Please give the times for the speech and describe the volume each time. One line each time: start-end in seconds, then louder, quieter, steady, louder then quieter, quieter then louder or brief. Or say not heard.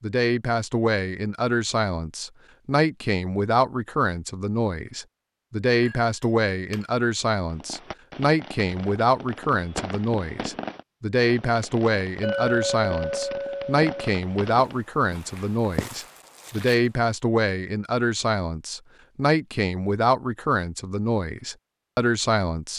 0.0-22.7 steady.